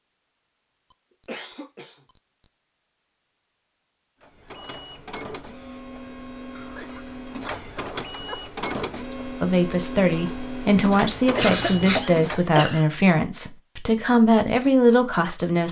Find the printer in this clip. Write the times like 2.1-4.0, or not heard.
4.2-12.6.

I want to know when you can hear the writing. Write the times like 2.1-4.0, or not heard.
11.3-12.1.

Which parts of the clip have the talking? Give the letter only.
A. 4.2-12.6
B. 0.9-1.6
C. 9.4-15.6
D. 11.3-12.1
C.